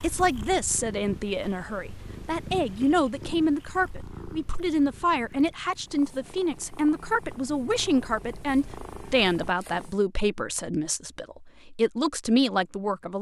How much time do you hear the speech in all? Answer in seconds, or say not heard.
13 s.